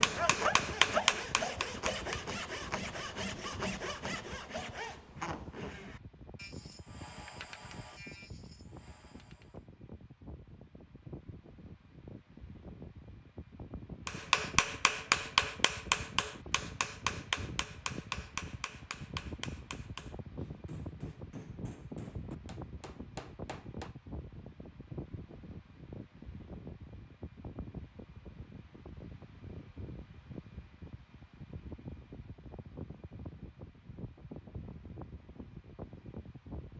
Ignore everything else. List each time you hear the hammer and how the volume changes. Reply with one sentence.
The hammer can be heard briefly from 0.0 to 2.2 s; and from 14.1 to 23.9 s, getting quieter.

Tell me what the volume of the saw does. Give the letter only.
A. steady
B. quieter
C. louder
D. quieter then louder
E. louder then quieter
B.